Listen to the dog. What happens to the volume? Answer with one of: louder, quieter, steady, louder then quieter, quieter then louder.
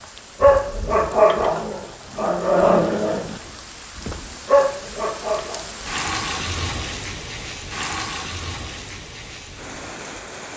quieter then louder.